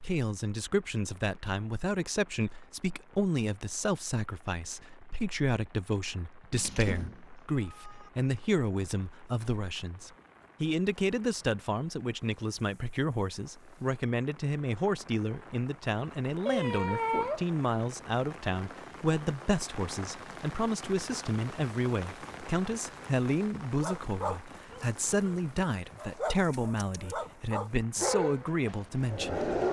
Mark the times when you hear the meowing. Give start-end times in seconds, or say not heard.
6.5-8.1, 16.4-17.4, 26.4-27.1.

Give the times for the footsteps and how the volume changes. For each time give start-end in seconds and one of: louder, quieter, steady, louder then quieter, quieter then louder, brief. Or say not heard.
not heard.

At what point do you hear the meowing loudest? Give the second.
17 s.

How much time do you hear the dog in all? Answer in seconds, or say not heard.
6 s.